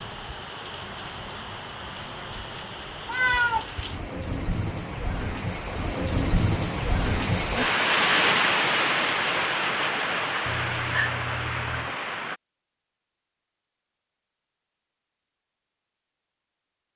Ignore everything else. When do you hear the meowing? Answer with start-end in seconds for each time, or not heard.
3.0-3.6, 10.4-11.9.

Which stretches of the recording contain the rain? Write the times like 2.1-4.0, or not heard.
0.0-12.4.